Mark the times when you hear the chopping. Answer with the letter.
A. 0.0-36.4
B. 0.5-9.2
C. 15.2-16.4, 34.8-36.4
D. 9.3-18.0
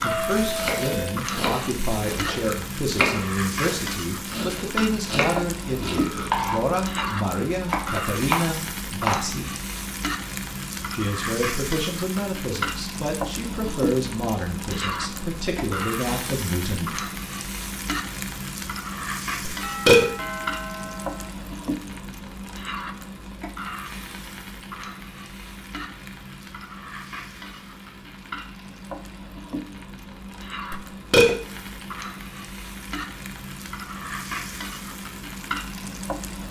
B.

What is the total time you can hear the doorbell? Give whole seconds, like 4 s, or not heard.
3 s.